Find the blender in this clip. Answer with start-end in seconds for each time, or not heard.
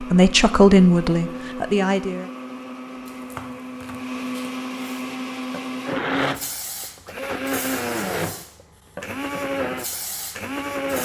0.0-11.0.